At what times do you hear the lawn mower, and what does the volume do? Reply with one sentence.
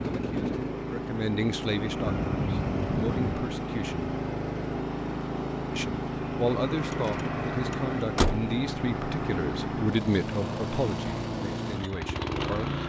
The lawn mower can be heard from 0.0 to 12.8 s, at a steady volume.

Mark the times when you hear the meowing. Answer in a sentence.
You can hear the meowing from 2.0 to 3.4 s and from 6.5 to 8.1 s.